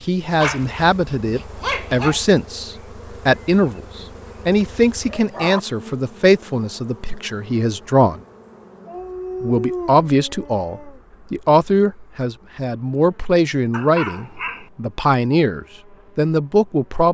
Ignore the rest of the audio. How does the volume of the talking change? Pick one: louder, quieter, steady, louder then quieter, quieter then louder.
steady.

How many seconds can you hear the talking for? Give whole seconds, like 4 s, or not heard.
15 s.